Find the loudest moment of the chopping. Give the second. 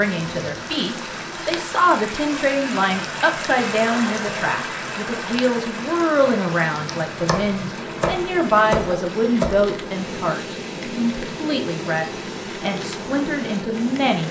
9 s.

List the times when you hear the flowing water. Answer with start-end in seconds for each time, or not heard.
0.0-14.2.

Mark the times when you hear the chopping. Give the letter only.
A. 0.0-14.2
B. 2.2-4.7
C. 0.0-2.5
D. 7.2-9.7
D.